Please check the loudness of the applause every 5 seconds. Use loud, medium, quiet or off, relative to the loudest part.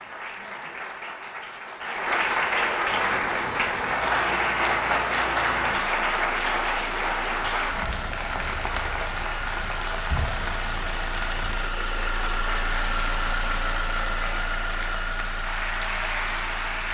loud, loud, medium, medium.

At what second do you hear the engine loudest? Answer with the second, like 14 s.
13 s.